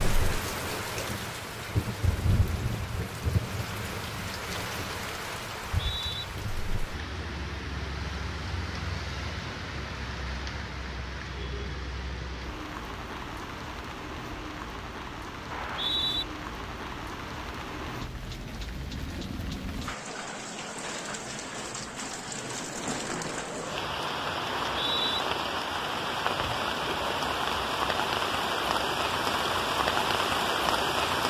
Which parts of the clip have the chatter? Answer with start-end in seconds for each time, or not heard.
not heard.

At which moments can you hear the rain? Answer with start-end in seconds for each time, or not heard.
0.0-31.2.